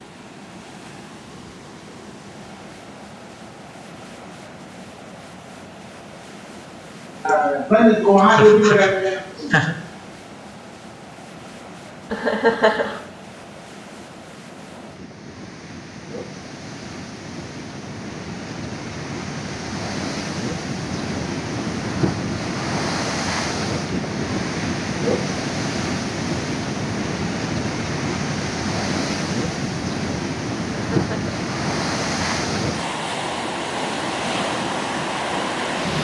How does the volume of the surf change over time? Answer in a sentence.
The volume of the surf goes up.